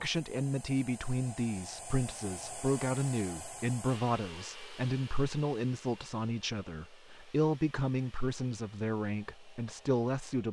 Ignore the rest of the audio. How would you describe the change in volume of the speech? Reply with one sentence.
The loudness of the speech stays about the same.